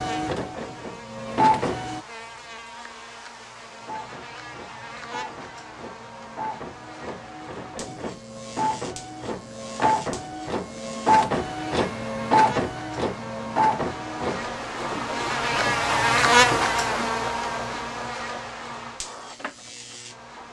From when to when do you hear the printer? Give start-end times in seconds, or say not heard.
0.0-2.0, 3.7-20.4.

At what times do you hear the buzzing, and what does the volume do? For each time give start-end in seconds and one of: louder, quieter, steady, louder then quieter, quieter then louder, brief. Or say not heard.
0.0-20.4 louder.